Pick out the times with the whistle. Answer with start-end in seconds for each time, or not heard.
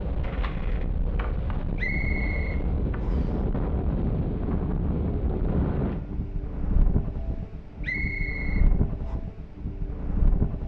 1.8-3.4, 7.8-9.2.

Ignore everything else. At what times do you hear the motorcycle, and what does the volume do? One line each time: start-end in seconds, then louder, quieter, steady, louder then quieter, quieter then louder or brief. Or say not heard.
not heard.